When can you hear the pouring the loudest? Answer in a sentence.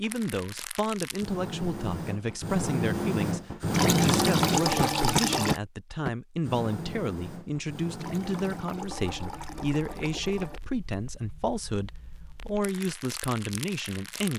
The loudest moment of the pouring is at 5 seconds.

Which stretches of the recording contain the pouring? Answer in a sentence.
The pouring can be heard from 3.7 to 5.6 s and from 8.0 to 10.6 s.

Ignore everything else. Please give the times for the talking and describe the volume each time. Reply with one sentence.
The talking can be heard from 0.0 to 14.3 s, at a steady volume.